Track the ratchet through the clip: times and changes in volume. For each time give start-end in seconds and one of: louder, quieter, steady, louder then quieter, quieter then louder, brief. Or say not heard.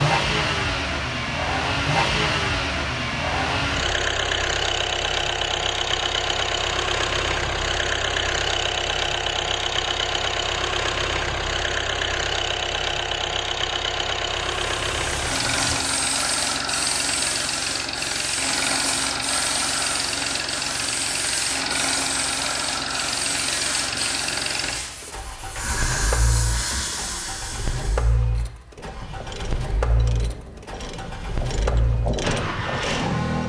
28.8-33.4 louder.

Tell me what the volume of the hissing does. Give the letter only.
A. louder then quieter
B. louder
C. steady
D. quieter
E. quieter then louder
C.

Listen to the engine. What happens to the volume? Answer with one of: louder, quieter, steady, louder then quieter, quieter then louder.
quieter.